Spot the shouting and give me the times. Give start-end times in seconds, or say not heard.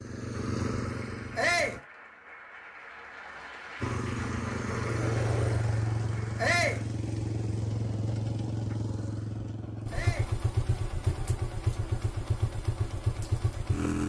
1.4-1.8, 6.3-6.8, 9.9-10.3.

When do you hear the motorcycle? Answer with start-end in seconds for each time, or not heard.
0.0-1.8, 3.8-14.0.